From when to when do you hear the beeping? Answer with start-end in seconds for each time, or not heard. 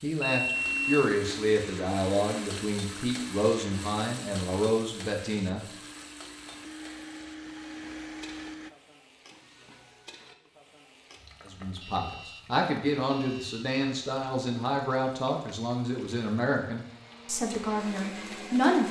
0.2-1.1, 11.7-12.4, 13.1-13.6.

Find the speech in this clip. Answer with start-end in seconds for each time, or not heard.
0.0-5.6, 11.4-18.8.